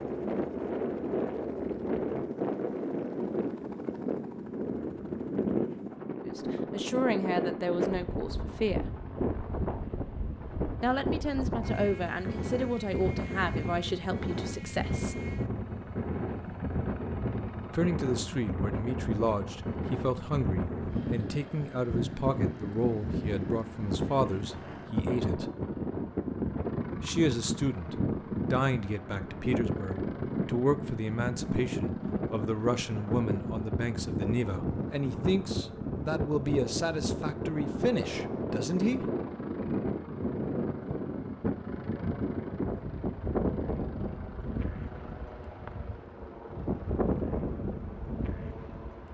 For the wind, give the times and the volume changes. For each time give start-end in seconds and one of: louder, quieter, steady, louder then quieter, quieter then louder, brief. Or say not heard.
0.0-49.1 steady.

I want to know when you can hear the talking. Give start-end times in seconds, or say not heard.
6.2-8.9, 10.8-15.2, 17.7-25.5, 27.0-39.0.